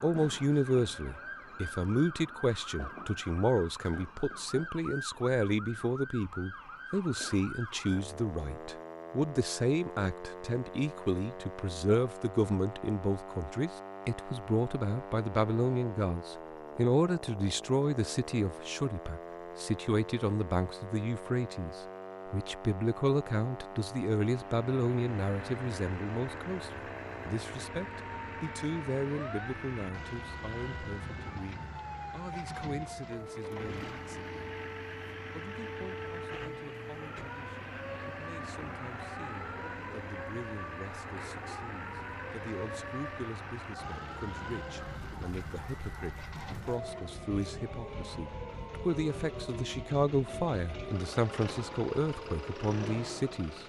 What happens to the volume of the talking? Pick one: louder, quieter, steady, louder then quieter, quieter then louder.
quieter then louder.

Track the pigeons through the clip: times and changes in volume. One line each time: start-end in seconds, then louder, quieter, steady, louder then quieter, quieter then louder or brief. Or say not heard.
not heard.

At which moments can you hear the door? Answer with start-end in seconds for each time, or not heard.
not heard.